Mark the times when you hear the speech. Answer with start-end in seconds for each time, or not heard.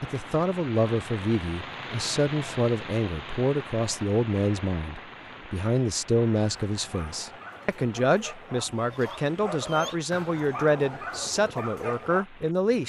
0.0-12.8.